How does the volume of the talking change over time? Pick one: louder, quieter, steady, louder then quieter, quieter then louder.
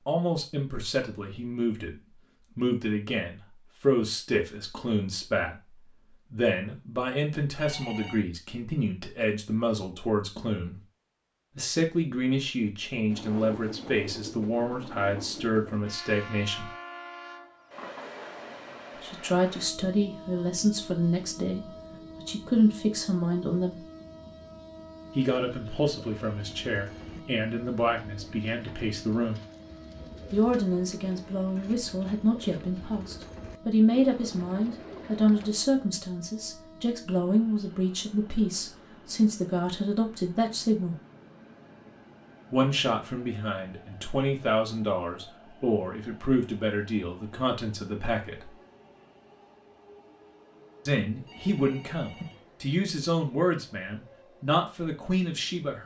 steady.